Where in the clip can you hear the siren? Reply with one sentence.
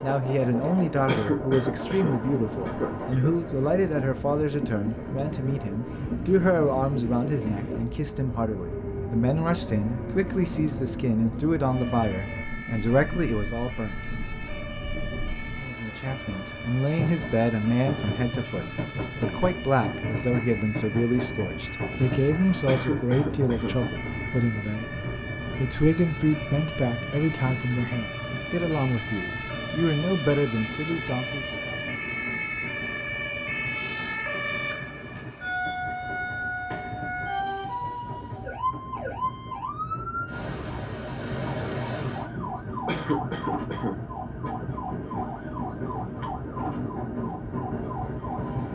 The siren can be heard from 11.6 to 48.7 s.